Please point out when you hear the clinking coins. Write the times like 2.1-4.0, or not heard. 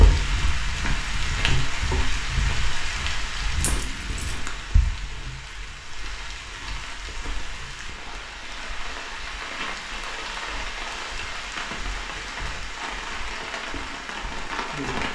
3.6-4.5.